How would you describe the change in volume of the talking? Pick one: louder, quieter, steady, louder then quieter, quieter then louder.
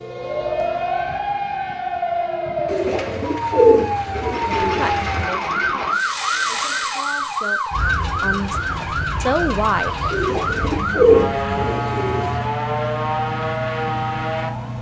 quieter then louder.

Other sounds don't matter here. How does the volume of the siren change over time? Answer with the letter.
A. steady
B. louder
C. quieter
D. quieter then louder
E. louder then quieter
A.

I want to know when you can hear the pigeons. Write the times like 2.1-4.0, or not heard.
2.6-5.2, 10.1-12.4.